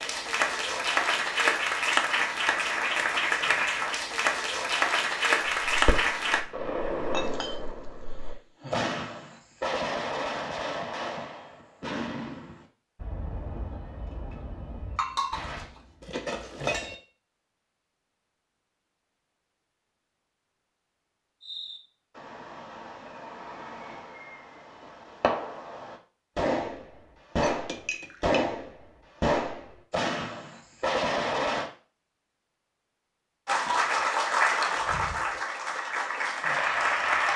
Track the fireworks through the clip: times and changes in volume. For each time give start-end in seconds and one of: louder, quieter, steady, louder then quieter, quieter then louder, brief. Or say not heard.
5.7-15.7 quieter
21.4-31.7 louder.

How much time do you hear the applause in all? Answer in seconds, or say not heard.
10 s.